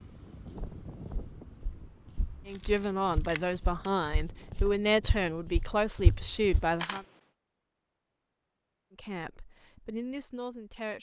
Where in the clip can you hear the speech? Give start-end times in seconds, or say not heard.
2.5-7.0, 8.9-10.9.